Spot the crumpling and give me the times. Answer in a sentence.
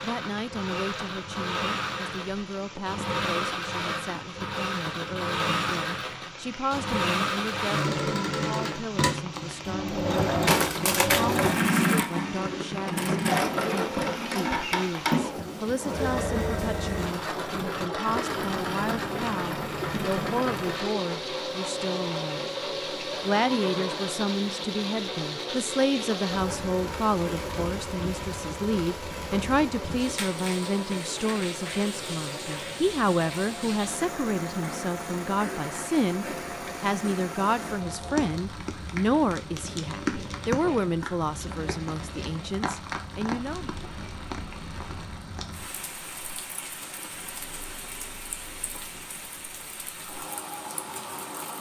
The crumpling can be heard from 10.4 to 11.7 s.